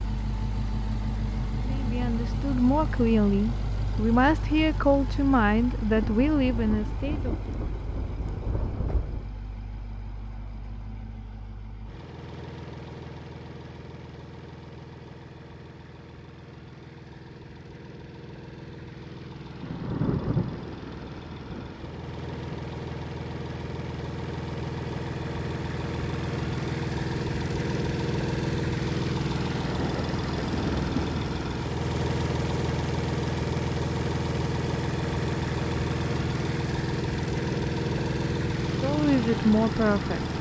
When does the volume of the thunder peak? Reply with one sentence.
The loudest moment of the thunder is at 20 seconds.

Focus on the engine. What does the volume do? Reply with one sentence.
The volume of the engine goes down, then up.